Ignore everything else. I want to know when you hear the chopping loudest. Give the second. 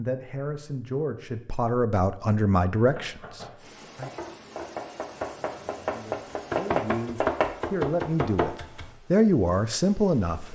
7 s.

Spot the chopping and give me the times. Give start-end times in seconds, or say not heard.
2.8-8.9.